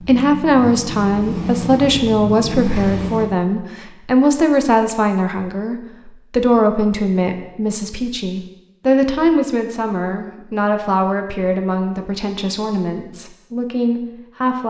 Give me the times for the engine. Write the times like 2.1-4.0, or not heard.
0.0-3.2.